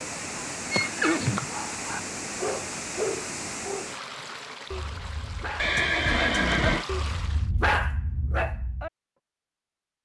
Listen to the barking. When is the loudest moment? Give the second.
8 s.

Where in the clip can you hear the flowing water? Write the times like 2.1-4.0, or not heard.
0.0-7.5.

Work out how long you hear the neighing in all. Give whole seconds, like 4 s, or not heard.
2 s.